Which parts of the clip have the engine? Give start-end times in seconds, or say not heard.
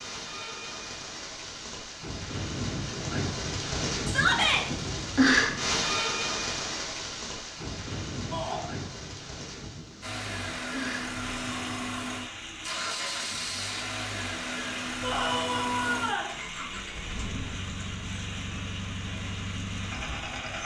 10.0-20.5.